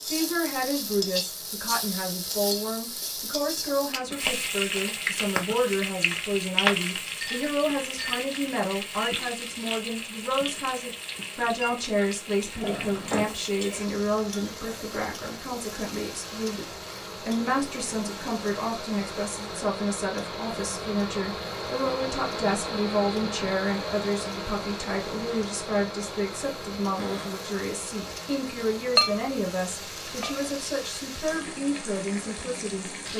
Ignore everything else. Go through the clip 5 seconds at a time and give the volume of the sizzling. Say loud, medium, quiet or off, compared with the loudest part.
loud, loud, medium, quiet, quiet, quiet, medium.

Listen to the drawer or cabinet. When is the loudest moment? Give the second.
13 s.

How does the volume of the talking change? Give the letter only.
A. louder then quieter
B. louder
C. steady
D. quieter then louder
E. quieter
C.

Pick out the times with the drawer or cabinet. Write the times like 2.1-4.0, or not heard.
12.6-13.3, 26.9-27.4.